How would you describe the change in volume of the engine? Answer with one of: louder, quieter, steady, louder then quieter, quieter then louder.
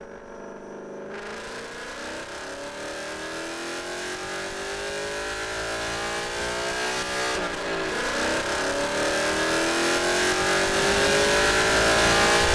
louder.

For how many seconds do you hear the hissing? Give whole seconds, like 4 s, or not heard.
2 s.